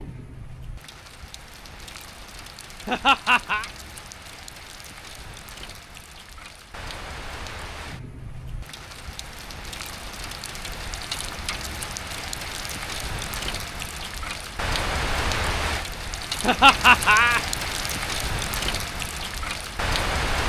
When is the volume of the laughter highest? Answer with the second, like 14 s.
17 s.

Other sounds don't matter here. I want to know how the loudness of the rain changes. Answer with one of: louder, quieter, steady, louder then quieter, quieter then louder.
louder.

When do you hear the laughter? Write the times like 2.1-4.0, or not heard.
2.9-3.6, 16.4-17.4.